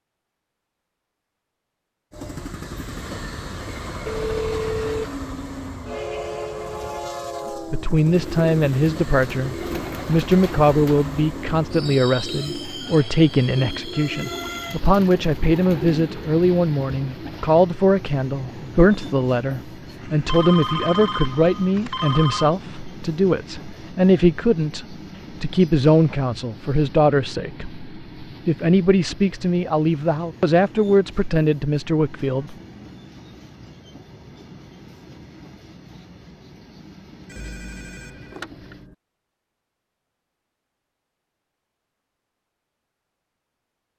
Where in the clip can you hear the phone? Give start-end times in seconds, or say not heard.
4.0-5.0, 20.0-22.5, 37.3-39.0.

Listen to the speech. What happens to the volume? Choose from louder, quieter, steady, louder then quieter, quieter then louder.
steady.